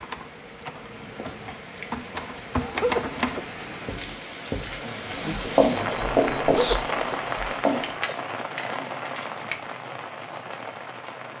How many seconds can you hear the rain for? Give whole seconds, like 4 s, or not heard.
11 s.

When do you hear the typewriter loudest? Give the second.
3 s.